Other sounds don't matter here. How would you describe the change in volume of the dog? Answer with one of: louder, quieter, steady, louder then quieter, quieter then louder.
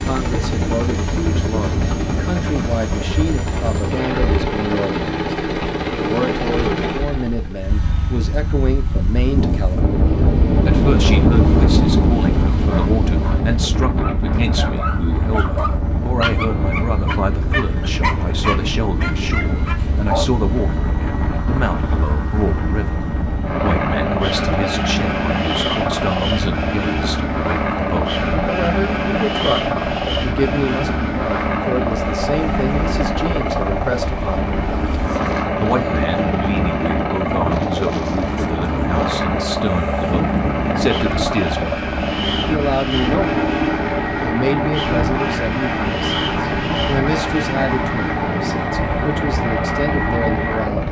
louder.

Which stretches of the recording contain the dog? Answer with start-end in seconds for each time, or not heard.
12.6-20.2.